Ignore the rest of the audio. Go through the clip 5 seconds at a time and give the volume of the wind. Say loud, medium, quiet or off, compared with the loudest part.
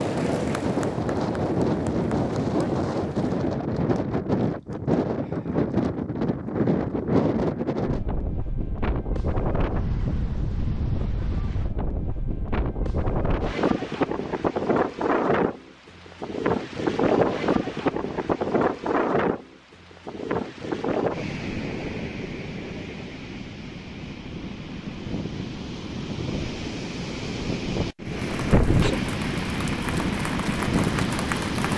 loud, loud, loud, loud, medium, loud, loud.